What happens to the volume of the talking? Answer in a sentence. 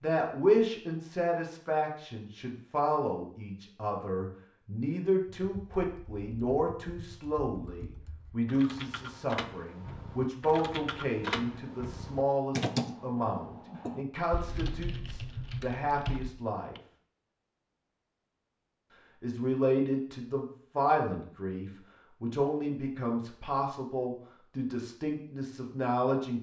The volume of the talking stays about the same.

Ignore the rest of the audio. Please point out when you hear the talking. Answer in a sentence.
You can hear the talking from 0.0 to 16.8 s and from 19.2 to 26.3 s.